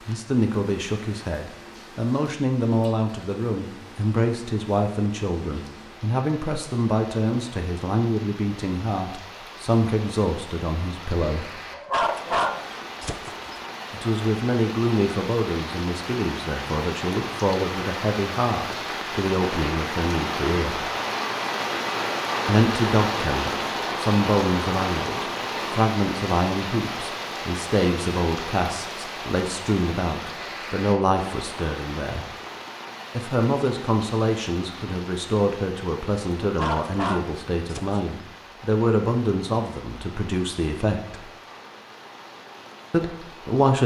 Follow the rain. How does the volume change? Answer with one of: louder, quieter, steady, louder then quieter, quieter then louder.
louder then quieter.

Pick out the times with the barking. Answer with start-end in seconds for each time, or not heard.
11.7-13.6, 36.4-38.0.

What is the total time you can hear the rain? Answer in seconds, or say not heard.
44 s.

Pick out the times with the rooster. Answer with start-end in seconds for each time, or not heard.
not heard.